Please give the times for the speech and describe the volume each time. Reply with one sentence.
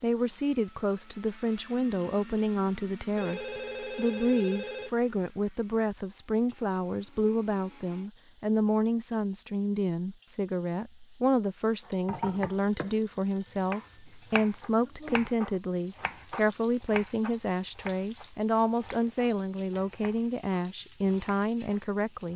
You can hear the speech from 0.0 to 22.3 s, at a steady volume.